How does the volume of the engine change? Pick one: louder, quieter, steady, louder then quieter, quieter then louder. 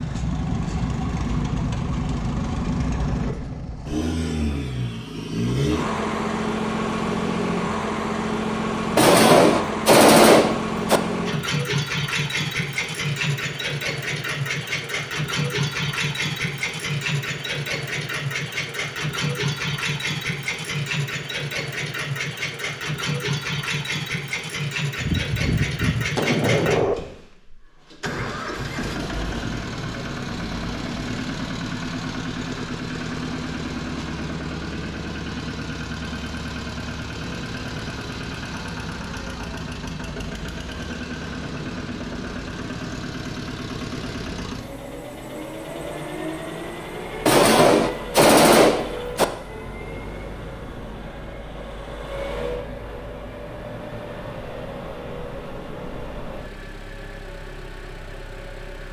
quieter.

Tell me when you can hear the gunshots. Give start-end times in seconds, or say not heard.
8.9-11.0, 24.9-26.9, 47.2-49.2.